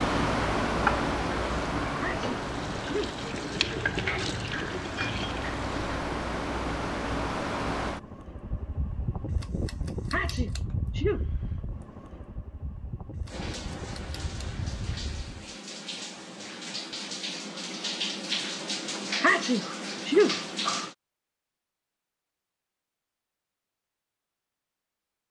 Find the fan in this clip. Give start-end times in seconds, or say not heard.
0.0-15.6.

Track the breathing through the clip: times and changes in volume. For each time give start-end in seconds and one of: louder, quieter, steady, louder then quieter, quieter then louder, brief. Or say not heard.
not heard.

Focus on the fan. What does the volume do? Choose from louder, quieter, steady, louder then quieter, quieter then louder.
quieter.